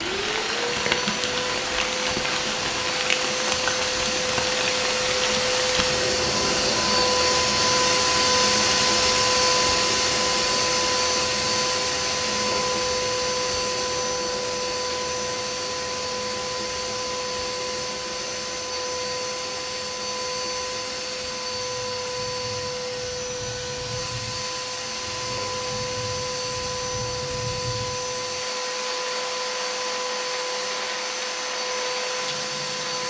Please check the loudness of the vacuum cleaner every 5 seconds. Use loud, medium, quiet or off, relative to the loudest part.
medium, loud, loud, medium, medium, medium, medium.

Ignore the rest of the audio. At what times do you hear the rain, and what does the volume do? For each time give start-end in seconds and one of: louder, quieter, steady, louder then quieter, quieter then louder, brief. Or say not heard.
0.0-33.0 quieter then louder.